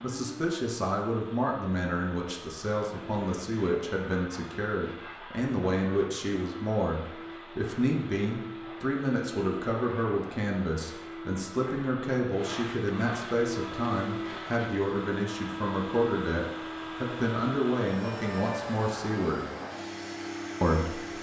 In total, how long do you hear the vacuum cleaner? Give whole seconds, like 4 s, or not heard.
21 s.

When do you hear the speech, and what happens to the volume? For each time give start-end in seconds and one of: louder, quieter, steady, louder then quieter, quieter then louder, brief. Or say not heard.
0.0-19.4 steady
20.6-21.1 brief.